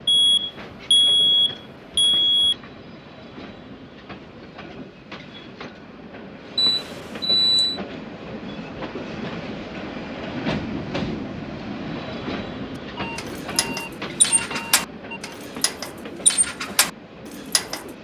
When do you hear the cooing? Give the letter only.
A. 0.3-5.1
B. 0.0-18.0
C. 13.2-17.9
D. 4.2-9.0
C.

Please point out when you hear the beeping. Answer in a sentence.
You can hear the beeping from 0.1 to 2.5 s, from 6.5 to 7.8 s and from 12.9 to 15.3 s.